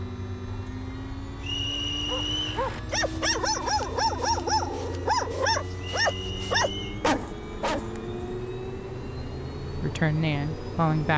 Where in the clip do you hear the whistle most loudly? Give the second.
2 s.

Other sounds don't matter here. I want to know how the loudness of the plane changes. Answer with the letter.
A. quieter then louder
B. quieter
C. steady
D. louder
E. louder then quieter
C.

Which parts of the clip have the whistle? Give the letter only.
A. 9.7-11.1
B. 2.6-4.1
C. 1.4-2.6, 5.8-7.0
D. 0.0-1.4
C.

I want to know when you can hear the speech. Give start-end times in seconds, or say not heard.
9.7-11.1.